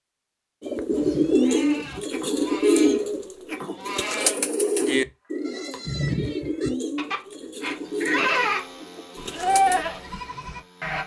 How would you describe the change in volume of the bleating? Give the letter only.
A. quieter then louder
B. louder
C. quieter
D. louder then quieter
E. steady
B.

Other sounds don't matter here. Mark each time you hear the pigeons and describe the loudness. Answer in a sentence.
The pigeons can be heard from 0.6 to 9.8 s, getting quieter.